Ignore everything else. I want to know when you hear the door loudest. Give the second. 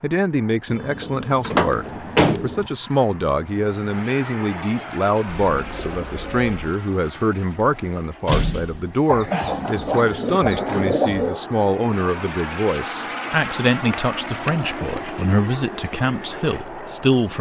2 s.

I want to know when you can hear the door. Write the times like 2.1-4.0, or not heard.
1.4-2.5, 7.2-8.9, 13.9-14.6.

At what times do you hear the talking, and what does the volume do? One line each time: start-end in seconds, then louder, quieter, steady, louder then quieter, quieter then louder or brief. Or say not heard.
0.0-17.3 steady.